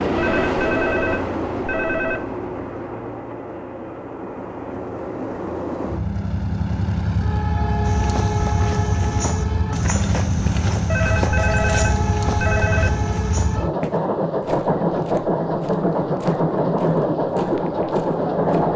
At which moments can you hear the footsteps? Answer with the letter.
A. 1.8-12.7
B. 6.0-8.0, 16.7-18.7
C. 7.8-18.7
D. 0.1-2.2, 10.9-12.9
C.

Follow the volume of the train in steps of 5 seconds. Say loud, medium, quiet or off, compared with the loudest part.
medium, medium, loud, loud.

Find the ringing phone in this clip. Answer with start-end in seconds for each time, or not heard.
0.1-2.2, 10.9-12.9.